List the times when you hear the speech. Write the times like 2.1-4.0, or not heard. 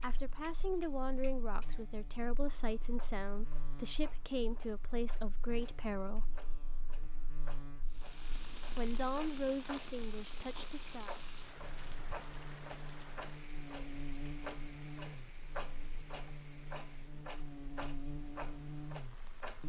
0.0-6.2, 8.8-11.2.